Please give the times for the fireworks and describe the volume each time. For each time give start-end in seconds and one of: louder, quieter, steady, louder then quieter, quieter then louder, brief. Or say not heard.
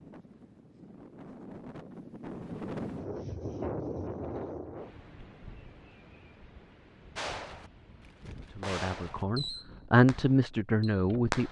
7.2-11.4 louder then quieter.